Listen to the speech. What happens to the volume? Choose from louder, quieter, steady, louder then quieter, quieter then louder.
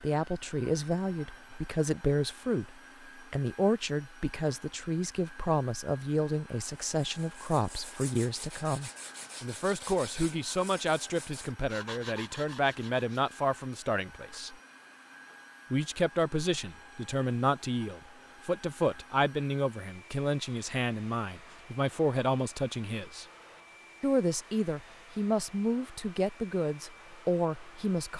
steady.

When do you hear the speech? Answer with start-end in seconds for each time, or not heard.
0.0-14.6, 15.7-23.2, 24.0-28.1.